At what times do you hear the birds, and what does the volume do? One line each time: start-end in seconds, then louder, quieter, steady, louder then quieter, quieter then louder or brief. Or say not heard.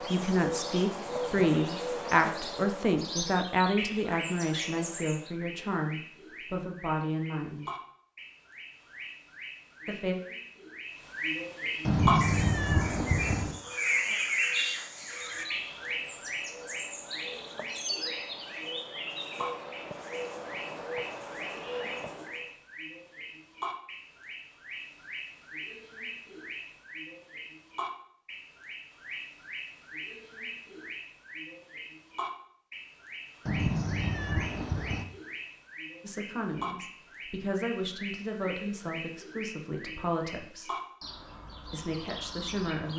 0.0-42.9 louder then quieter.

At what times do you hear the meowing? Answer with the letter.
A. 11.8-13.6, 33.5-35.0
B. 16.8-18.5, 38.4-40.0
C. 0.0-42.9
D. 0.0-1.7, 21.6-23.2
A.